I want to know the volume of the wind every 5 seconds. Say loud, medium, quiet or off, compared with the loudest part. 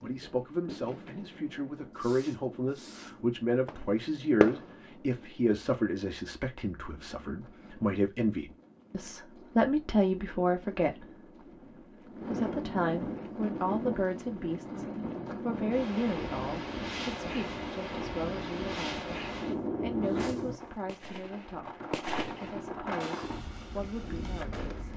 quiet, quiet, loud, loud, loud.